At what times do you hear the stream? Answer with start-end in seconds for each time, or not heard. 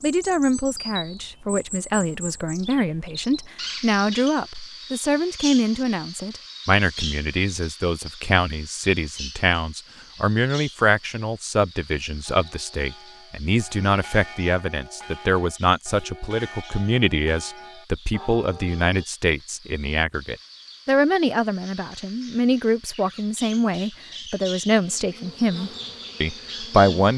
not heard.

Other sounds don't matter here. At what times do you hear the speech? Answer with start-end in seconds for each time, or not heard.
0.0-27.1.